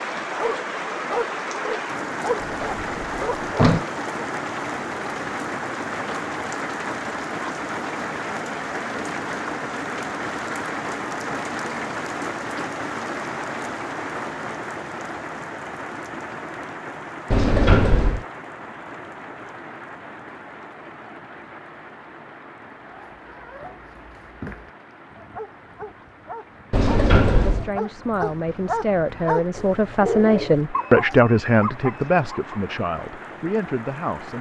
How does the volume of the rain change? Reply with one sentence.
The volume of the rain goes down.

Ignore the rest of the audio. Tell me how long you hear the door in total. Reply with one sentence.
The door can be heard for 3 seconds in total.